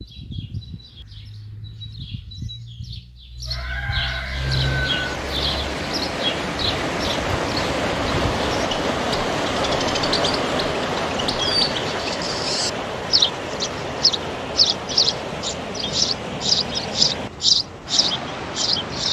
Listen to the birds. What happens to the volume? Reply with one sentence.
The loudness of the birds goes up.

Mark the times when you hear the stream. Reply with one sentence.
The stream can be heard from 4.3 to 19.0 s.